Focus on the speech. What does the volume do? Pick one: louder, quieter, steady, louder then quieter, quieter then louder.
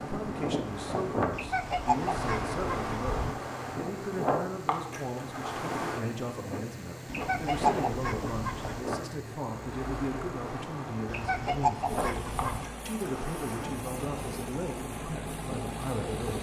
steady.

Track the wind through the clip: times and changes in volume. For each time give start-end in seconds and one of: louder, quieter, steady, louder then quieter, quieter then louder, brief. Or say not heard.
0.0-16.3 quieter.